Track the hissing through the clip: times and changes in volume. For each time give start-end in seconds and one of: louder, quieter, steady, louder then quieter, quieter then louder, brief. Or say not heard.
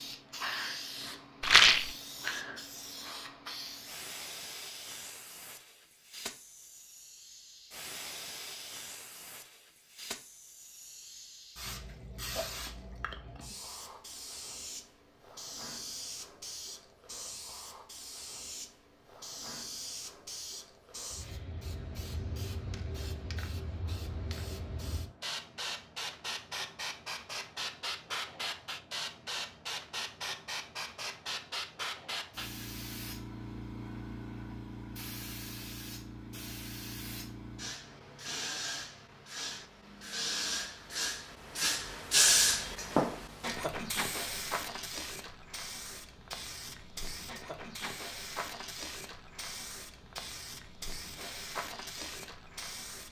0.0-53.0 louder.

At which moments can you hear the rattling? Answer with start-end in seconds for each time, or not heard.
1.4-1.9.